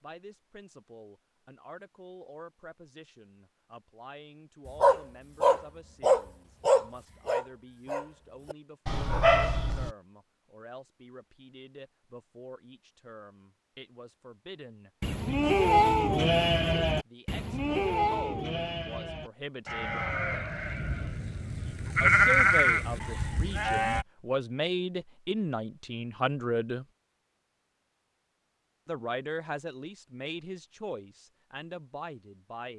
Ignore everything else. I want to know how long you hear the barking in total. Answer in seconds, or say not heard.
5 s.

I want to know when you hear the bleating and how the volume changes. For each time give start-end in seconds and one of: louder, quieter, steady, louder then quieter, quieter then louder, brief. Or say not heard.
15.0-24.1 quieter then louder.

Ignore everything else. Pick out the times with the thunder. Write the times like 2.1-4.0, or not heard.
not heard.